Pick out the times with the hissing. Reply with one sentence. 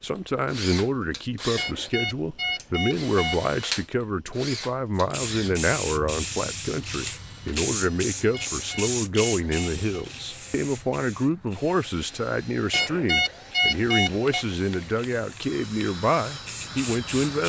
You can hear the hissing from 5.0 to 17.4 s.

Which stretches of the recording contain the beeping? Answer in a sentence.
You can hear the beeping from 1.6 to 3.5 s, from 8.3 to 10.1 s and from 12.7 to 14.4 s.